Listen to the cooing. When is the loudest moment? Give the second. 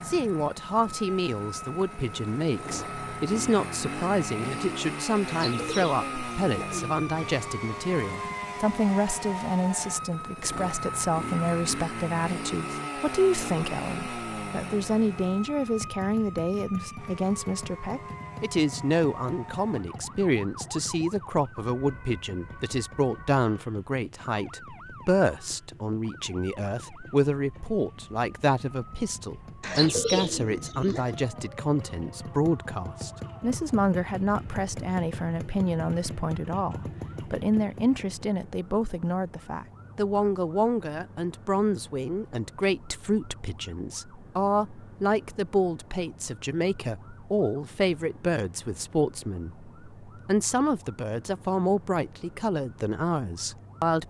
30 s.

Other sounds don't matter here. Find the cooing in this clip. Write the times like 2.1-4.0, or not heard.
5.2-7.0, 29.6-31.1.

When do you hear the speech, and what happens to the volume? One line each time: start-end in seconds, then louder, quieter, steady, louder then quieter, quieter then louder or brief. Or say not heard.
0.1-54.0 steady.